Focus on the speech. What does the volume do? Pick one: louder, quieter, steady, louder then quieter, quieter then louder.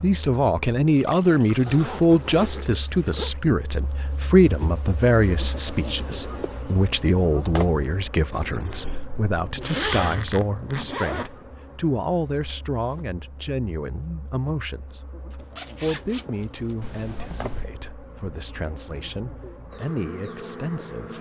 quieter.